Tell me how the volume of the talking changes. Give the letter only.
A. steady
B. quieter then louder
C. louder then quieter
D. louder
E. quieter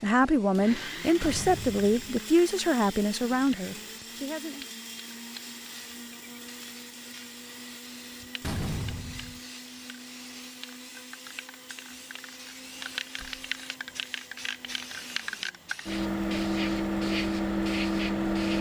E.